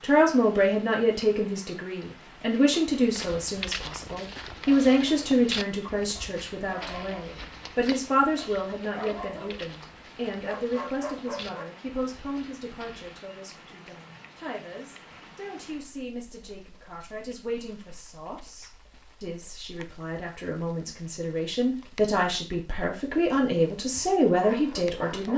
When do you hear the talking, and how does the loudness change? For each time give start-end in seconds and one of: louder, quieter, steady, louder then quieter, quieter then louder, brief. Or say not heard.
0.0-25.3 quieter then louder.